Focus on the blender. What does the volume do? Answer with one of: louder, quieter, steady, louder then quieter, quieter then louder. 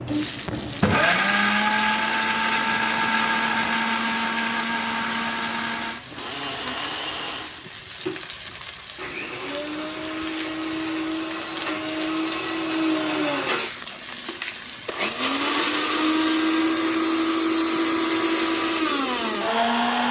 quieter then louder.